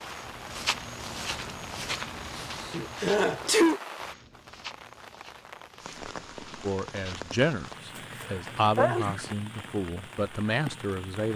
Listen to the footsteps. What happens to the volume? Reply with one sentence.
The loudness of the footsteps goes down.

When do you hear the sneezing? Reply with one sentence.
The sneezing can be heard from 2.4 to 3.8 s and from 8.2 to 9.3 s.